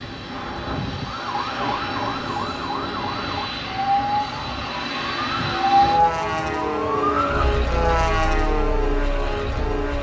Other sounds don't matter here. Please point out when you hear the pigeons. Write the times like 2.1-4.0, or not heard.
not heard.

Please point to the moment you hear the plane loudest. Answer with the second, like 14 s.
8 s.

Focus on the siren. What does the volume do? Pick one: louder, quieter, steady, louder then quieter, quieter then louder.
louder then quieter.